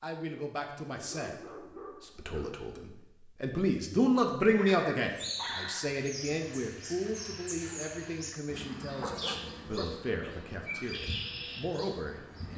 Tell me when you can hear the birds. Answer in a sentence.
You can hear the birds from 5.1 to 12.5 s.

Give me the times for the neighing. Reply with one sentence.
The neighing can't be heard in this clip.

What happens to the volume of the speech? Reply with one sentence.
The loudness of the speech goes up, then down.